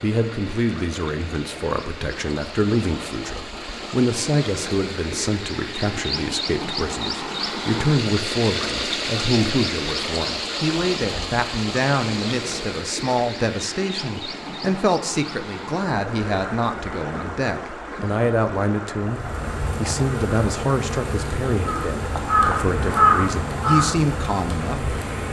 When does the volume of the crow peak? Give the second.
23 s.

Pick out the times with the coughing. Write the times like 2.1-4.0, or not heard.
not heard.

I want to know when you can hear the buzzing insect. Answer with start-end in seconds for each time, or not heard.
19.0-25.2.